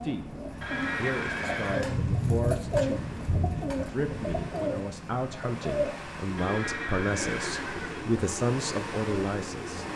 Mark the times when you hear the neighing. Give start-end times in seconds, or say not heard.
0.6-1.9, 6.3-8.1.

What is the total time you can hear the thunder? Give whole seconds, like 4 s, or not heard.
3 s.